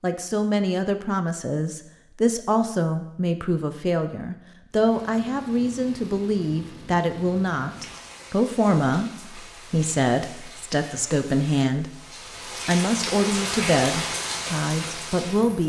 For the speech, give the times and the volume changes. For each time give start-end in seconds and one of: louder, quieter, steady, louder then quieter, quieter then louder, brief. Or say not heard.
0.0-15.6 steady.